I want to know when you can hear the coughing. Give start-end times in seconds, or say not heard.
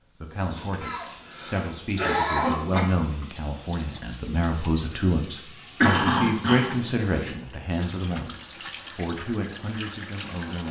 0.8-2.8, 5.8-6.8.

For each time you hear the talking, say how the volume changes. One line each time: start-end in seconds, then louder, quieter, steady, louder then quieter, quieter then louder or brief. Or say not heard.
0.2-10.6 louder then quieter.